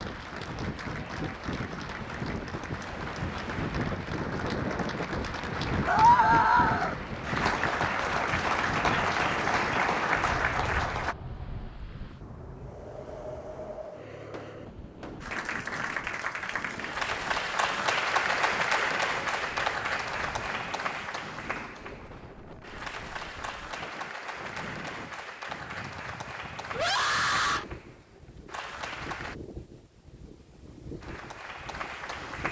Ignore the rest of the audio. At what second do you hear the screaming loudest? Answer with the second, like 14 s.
6 s.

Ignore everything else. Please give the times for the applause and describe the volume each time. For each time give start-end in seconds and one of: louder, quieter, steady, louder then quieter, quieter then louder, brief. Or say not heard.
0.0-11.2 louder
15.2-29.4 quieter
31.0-32.4 brief.